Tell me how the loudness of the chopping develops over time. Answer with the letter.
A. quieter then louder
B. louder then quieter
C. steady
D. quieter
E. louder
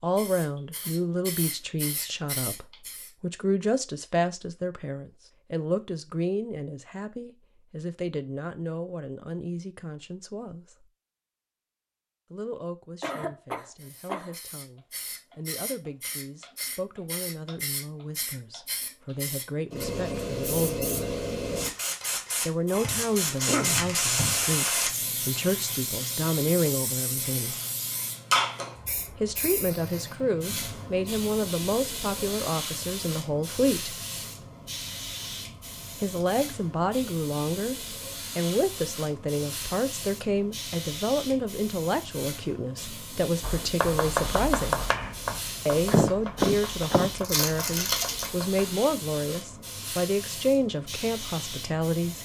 D.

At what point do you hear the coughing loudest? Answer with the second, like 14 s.
46 s.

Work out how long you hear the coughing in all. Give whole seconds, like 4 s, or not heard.
3 s.